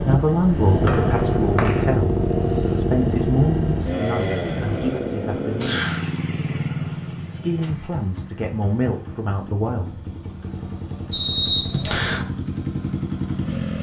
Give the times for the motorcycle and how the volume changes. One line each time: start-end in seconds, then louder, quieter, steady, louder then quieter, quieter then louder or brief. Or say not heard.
0.0-13.7 quieter then louder.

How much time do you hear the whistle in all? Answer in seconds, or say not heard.
3 s.